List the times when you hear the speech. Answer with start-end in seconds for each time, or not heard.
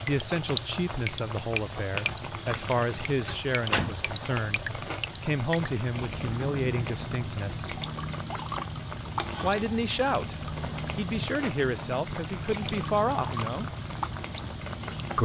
0.0-7.8, 9.4-10.3, 10.9-13.7.